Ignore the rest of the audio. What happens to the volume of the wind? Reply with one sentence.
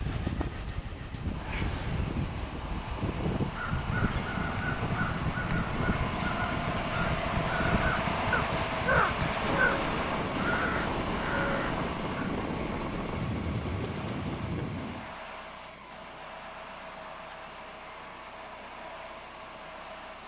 The loudness of the wind stays about the same.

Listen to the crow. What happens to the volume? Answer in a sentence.
The loudness of the crow goes up, then down.